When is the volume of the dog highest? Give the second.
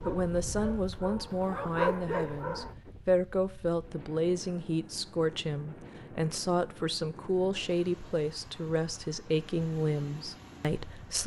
2 s.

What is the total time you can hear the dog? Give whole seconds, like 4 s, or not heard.
3 s.